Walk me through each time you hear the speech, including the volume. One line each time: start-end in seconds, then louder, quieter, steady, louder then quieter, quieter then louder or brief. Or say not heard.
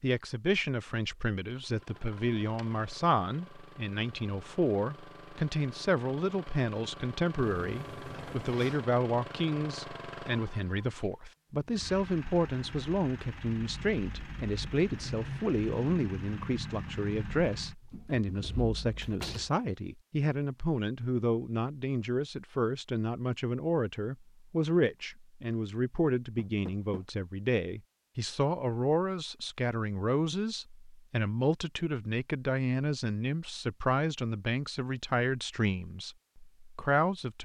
0.0-37.4 steady.